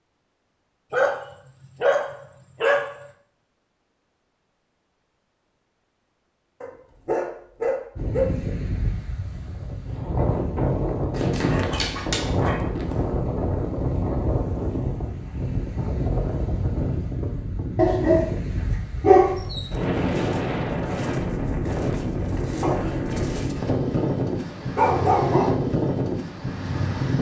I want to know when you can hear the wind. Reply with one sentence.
You can hear the wind from 8.0 to 27.1 s.